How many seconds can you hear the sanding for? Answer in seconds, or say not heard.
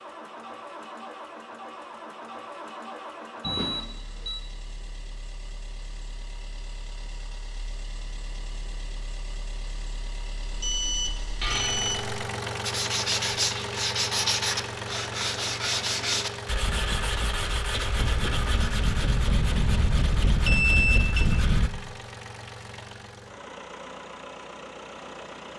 9 s.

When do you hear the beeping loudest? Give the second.
21 s.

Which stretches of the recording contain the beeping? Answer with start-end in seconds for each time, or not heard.
3.4-4.5, 10.5-12.2, 20.4-21.3.